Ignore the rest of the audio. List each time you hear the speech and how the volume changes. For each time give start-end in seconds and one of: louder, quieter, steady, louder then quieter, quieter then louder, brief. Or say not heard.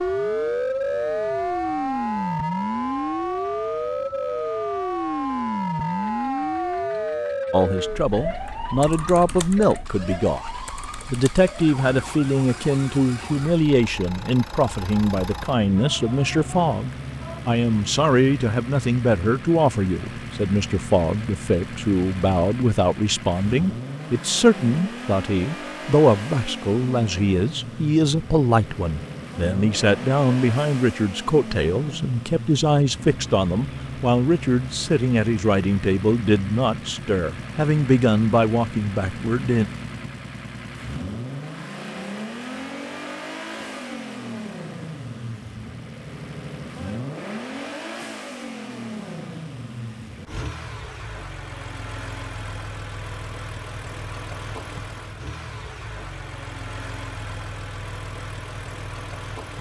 7.5-39.6 steady.